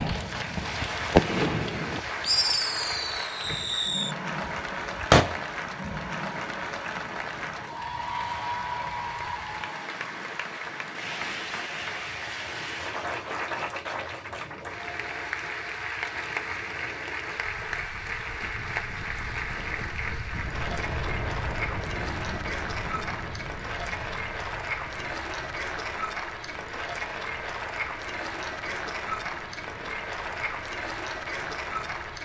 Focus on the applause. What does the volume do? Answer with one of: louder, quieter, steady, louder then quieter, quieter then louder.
steady.